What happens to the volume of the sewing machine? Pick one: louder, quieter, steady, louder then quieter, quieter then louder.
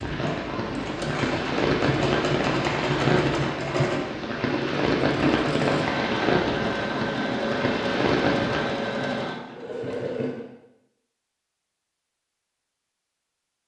steady.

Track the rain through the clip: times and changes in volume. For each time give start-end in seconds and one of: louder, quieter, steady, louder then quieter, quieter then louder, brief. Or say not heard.
0.0-8.9 steady.